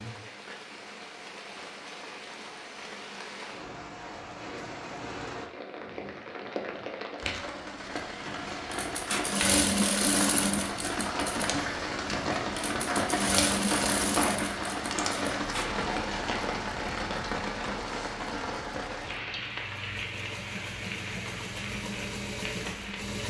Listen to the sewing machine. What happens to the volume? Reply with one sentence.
The loudness of the sewing machine goes down, then up.